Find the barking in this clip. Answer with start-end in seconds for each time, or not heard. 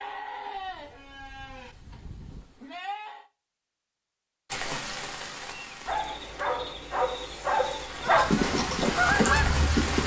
5.8-8.3.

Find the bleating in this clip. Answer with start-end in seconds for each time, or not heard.
0.0-3.2, 8.0-10.0.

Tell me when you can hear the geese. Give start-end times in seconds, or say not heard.
8.2-10.0.